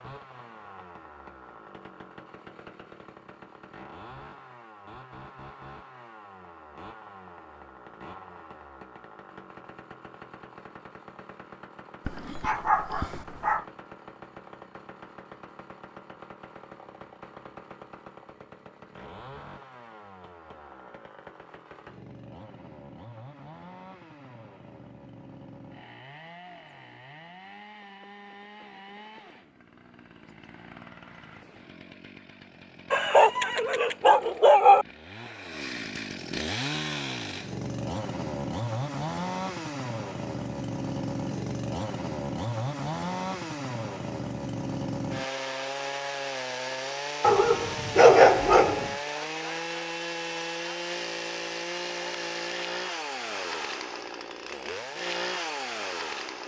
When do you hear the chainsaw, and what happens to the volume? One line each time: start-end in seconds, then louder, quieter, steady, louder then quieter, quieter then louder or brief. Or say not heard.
0.0-56.4 louder.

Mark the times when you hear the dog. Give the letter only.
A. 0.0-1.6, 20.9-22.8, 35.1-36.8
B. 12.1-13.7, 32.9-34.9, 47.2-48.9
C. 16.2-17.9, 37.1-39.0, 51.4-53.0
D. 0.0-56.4
B.